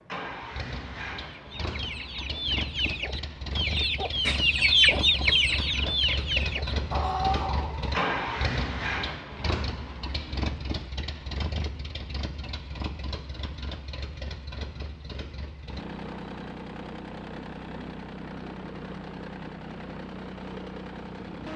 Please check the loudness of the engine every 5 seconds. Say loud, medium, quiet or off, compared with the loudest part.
medium, loud, medium, medium, medium.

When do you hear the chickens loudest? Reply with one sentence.
The volume of the chickens peaks at 5 seconds.